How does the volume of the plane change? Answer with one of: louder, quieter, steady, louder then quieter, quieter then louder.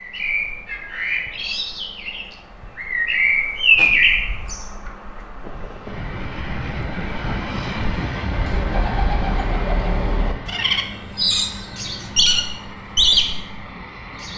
quieter.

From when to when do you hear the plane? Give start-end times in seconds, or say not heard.
5.4-14.3.